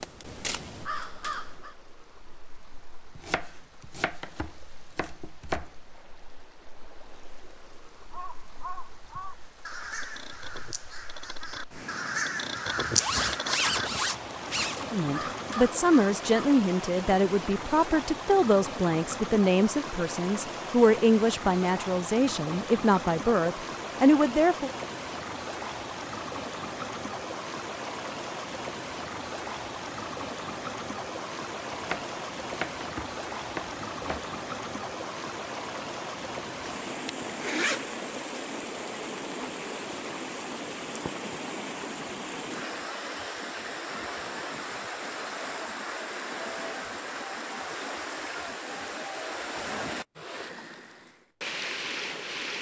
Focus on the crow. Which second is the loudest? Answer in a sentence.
The loudest moment of the crow is at 13 seconds.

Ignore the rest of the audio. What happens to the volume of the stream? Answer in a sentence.
The volume of the stream goes up.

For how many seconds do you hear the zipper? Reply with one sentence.
You can hear the zipper for 3 seconds altogether.